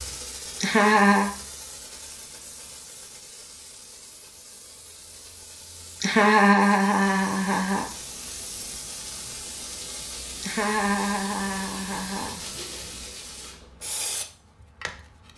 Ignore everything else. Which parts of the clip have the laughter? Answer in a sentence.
The laughter can be heard from 0.6 to 1.3 s, from 6.0 to 7.9 s and from 10.4 to 12.8 s.